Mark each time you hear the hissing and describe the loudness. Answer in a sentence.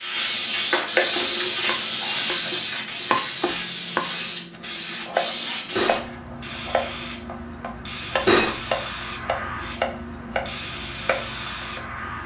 The hissing can be heard from 0.0 to 12.2 s, getting quieter.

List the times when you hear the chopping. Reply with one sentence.
The chopping can be heard from 1.1 to 11.8 s.